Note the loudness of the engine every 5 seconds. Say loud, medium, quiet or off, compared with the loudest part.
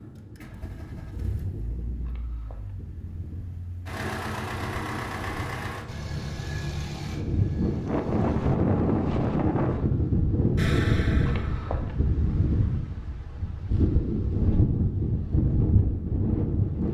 loud, loud, off, off.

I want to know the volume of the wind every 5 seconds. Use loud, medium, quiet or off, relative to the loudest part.
quiet, loud, loud, loud.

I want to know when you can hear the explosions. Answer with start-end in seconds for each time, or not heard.
10.6-11.8.